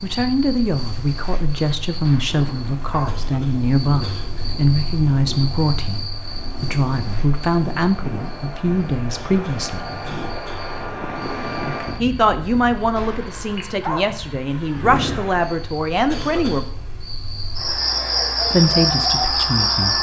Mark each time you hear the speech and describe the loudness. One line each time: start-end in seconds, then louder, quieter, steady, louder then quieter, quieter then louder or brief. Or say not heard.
0.0-9.9 steady
12.0-16.6 quieter then louder
18.5-19.9 brief.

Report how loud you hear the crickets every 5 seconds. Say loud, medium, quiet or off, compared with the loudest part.
quiet, quiet, quiet, loud.